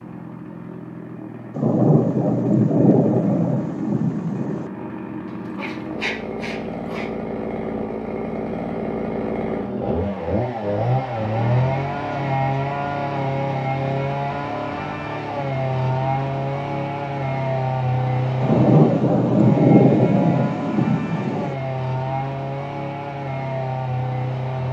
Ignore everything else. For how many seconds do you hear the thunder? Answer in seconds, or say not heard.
6 s.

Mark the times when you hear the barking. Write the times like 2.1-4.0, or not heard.
5.2-7.1.